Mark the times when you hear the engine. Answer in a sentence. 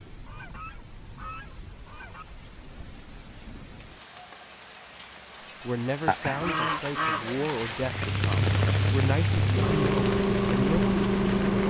The engine can be heard from 7.8 to 11.6 s.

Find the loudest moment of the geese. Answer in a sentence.
The loudest moment of the geese is at 7 seconds.